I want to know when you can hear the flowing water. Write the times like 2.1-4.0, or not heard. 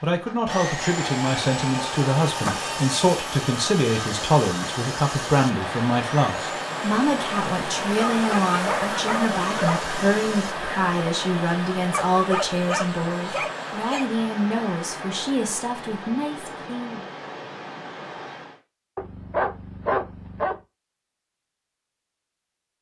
0.0-18.6.